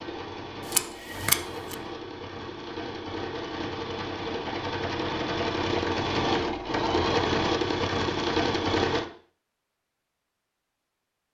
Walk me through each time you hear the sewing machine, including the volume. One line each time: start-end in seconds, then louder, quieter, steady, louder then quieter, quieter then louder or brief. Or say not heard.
0.0-9.1 louder.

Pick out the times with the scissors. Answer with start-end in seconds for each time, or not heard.
0.7-1.8.